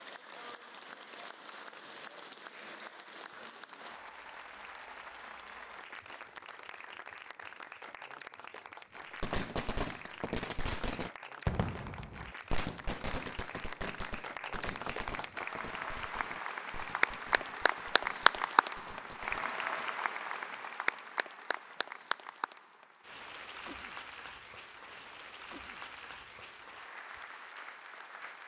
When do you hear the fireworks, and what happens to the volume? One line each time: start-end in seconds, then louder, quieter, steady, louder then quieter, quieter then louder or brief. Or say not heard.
9.2-19.9 quieter.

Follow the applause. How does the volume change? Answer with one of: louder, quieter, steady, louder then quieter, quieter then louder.
louder then quieter.